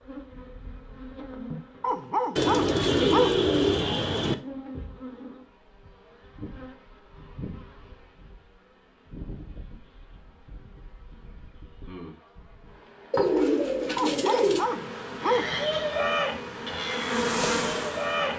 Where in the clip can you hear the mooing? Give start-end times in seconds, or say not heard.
15.2-18.3.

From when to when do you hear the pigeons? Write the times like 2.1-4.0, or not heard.
2.4-4.3, 13.1-14.7.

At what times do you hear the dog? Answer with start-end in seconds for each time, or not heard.
1.8-3.5, 13.9-15.6.